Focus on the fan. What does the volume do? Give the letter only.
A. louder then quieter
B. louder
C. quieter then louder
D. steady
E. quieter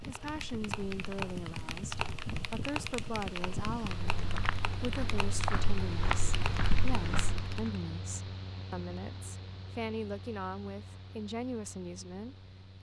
E.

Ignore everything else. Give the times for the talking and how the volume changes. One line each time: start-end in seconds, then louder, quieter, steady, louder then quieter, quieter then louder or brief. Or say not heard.
0.1-12.7 steady.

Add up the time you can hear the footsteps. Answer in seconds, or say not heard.
4 s.